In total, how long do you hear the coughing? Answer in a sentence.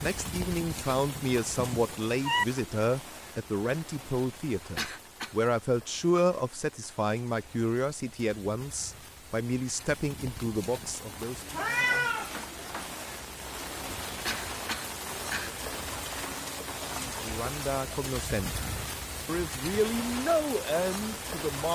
You can hear the coughing for 2 seconds altogether.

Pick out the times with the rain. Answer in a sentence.
You can hear the rain from 0.0 to 21.6 s.